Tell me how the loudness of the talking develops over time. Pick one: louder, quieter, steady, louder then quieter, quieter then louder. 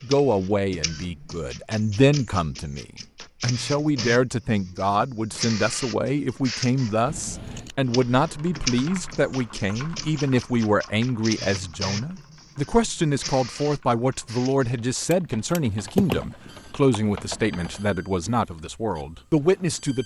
steady.